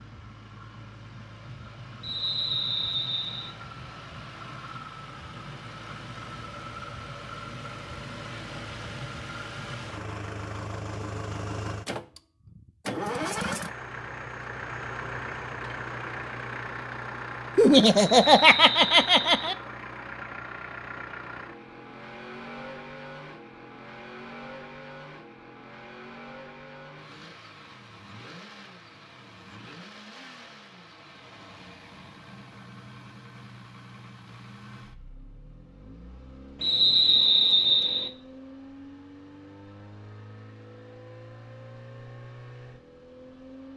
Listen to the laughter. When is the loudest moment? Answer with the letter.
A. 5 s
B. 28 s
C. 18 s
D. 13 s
C.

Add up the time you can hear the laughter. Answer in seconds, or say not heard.
2 s.